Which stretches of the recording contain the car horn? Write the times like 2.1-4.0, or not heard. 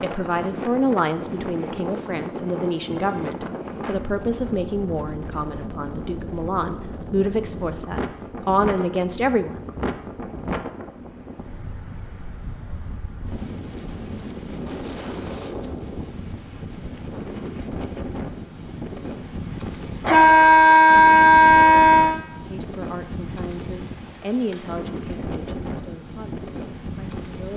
8.8-9.6, 20.0-22.1.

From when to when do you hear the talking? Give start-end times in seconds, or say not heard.
0.0-9.6, 22.4-27.5.